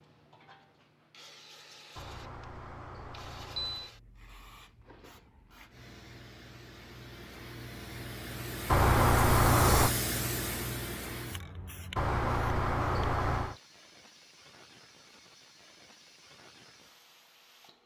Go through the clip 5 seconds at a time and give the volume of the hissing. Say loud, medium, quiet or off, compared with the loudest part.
quiet, loud, loud, quiet.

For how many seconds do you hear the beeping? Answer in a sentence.
The beeping can be heard for 5 seconds in total.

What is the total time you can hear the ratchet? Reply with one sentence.
The ratchet can't be heard in this clip.